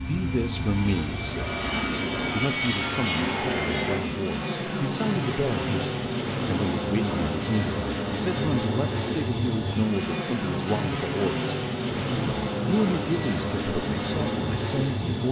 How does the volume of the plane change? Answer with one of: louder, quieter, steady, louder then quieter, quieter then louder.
steady.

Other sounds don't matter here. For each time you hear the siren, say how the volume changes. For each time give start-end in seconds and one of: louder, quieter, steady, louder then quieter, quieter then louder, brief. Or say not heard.
not heard.